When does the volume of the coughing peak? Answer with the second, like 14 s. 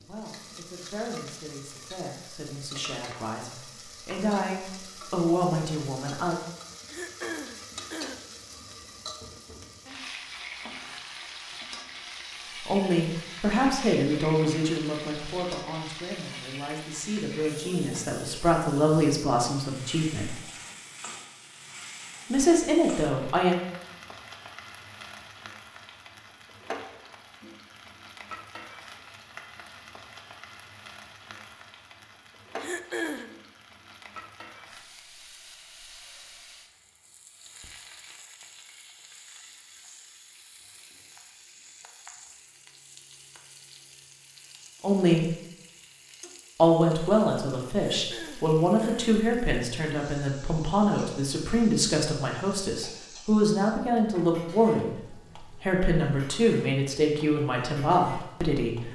33 s.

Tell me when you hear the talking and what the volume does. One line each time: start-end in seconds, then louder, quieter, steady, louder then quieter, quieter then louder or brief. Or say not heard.
0.0-6.3 louder
12.7-20.3 quieter then louder
22.3-23.6 brief
44.8-45.3 brief
46.5-58.9 steady.